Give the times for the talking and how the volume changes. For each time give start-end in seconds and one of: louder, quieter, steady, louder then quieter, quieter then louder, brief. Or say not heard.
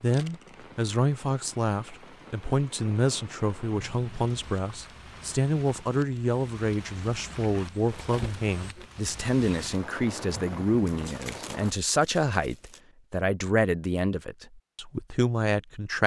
0.0-16.0 steady.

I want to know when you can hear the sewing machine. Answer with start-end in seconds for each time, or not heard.
not heard.